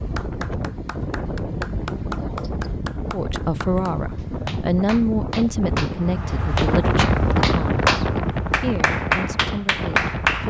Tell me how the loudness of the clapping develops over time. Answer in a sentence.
The volume of the clapping goes up.